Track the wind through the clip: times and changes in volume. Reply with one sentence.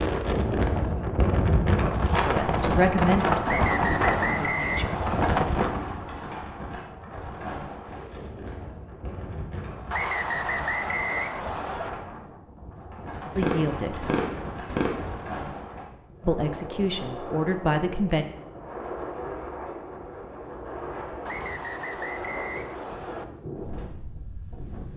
You can hear the wind from 0.0 to 24.9 s, getting quieter.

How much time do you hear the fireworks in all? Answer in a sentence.
The fireworks can be heard for 2 seconds in total.